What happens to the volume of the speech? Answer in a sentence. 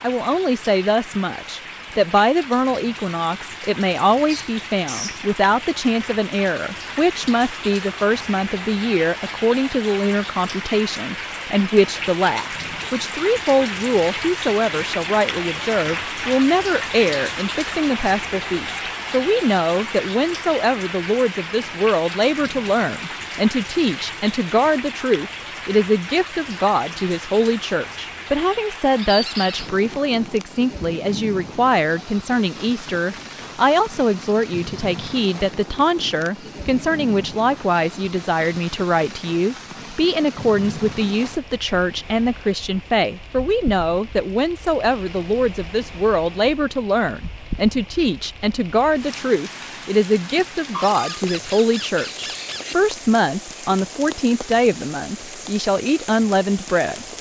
The volume of the speech stays about the same.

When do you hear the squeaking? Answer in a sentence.
The squeaking can be heard from 4.2 to 5.2 s, from 29.0 to 29.7 s and from 50.7 to 52.8 s.